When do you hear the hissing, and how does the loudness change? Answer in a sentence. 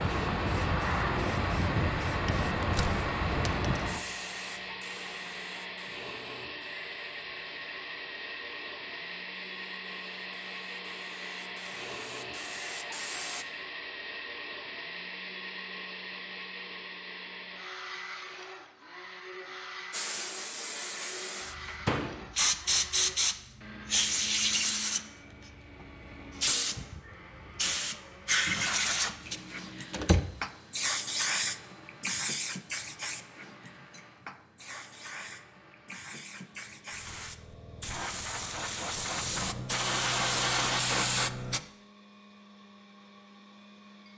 The hissing can be heard from 0.0 to 13.4 s, getting quieter then louder; and from 19.9 to 41.6 s, getting quieter then louder.